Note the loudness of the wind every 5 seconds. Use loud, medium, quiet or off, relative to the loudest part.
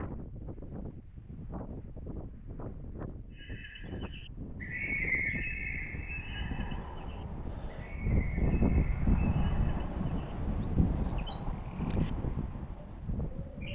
medium, loud, loud.